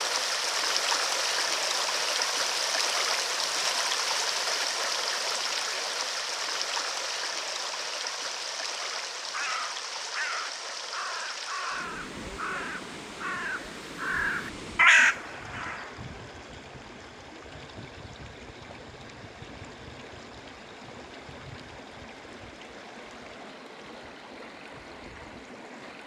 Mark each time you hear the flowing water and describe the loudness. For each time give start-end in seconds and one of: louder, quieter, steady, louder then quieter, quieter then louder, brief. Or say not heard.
0.0-26.0 quieter.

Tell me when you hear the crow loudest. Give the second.
15 s.